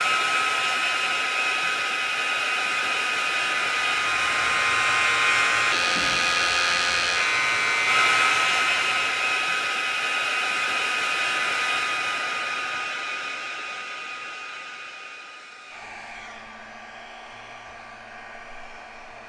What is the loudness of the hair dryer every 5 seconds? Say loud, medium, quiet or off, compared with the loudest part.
loud, loud, loud, quiet.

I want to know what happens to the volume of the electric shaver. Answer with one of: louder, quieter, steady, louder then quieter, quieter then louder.
steady.